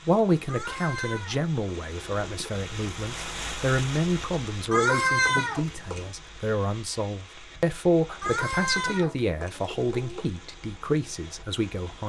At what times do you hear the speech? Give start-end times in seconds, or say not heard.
0.1-12.0.